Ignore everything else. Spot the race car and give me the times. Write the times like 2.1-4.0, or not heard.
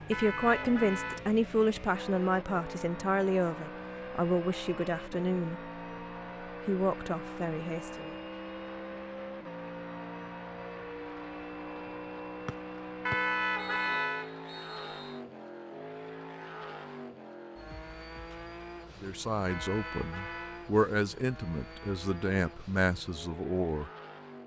0.0-24.4.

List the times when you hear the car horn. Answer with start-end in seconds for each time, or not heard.
0.1-1.2, 13.1-14.3, 19.4-20.6.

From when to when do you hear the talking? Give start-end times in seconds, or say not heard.
0.1-5.7, 6.7-8.1, 19.0-23.9.